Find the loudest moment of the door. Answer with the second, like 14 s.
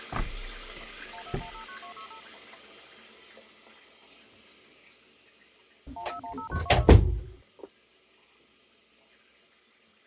7 s.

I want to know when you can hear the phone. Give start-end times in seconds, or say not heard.
1.1-2.2, 6.0-6.8.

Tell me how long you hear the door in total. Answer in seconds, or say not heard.
3 s.